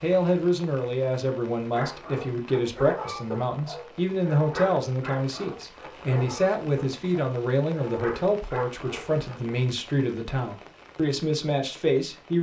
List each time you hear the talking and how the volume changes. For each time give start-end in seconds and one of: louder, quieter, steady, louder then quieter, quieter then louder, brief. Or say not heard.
0.0-12.3 steady.